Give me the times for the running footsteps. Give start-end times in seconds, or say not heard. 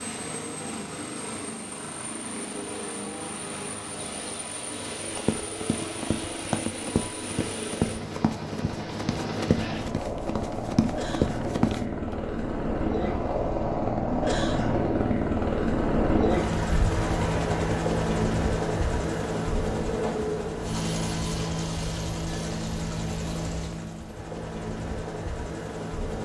5.1-11.8.